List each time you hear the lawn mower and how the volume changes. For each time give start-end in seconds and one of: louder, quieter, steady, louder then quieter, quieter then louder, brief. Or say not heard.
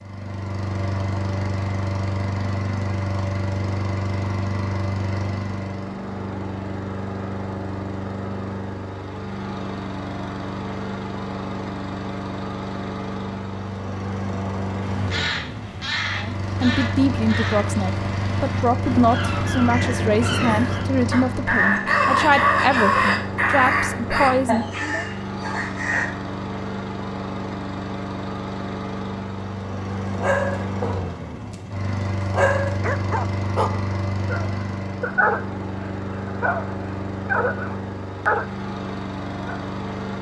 0.0-40.1 steady.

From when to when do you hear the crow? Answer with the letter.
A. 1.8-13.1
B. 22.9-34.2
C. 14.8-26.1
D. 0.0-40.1
C.